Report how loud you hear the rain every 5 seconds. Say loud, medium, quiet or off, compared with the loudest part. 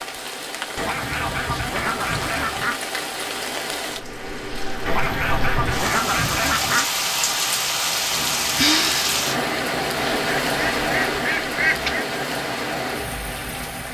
medium, loud, loud.